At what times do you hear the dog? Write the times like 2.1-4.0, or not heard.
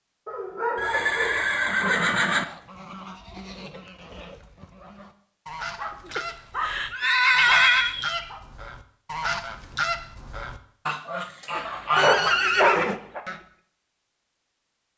0.2-2.1, 5.8-6.7, 7.3-8.4, 11.6-13.2.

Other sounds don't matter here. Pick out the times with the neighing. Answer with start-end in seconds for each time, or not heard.
0.8-2.5, 6.1-8.0, 11.9-13.0.